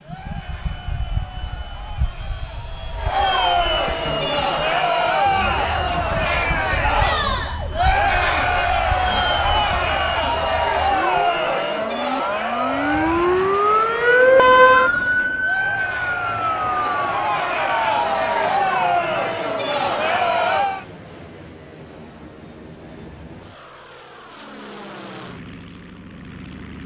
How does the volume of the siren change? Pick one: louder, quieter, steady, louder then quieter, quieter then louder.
louder.